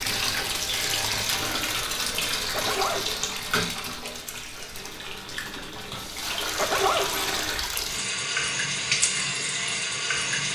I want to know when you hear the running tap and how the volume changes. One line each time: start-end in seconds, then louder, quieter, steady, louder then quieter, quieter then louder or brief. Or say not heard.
0.0-10.5 quieter then louder.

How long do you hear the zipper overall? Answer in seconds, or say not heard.
2 s.